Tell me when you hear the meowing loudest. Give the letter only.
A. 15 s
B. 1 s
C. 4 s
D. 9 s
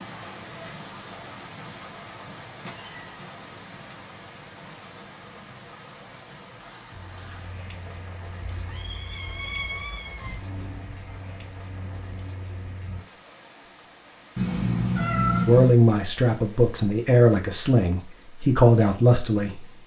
A.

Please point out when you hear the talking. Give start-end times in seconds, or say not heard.
15.4-19.6.